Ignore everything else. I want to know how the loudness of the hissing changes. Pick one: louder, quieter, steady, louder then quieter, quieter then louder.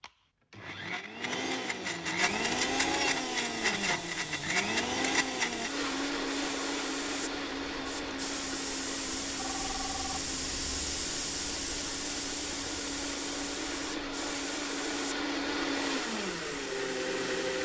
louder then quieter.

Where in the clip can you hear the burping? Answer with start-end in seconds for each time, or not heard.
not heard.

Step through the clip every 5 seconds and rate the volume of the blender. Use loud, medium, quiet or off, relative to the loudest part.
loud, loud, medium, loud.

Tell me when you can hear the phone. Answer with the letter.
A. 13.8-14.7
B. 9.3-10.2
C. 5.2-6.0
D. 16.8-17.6
B.